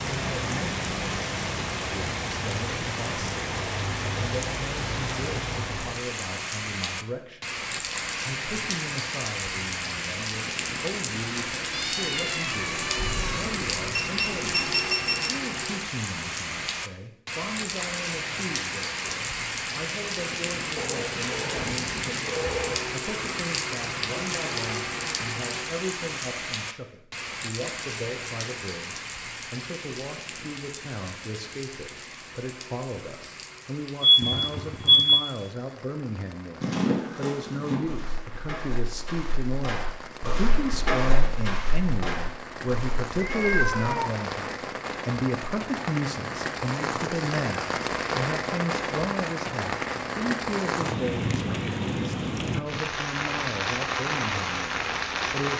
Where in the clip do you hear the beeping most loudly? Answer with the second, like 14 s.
35 s.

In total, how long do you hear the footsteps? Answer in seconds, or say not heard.
7 s.